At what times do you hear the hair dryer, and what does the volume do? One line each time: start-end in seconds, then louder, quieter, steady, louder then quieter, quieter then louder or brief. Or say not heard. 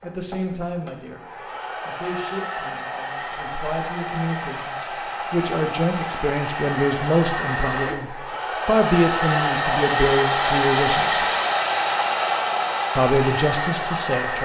0.0-14.3 louder.